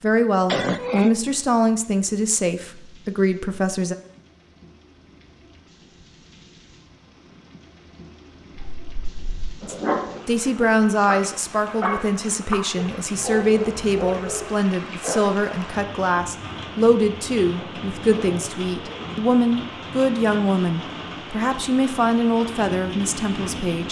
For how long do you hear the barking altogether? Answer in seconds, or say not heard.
7 s.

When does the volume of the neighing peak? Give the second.
1 s.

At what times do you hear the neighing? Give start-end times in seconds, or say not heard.
0.5-1.1, 17.6-19.2.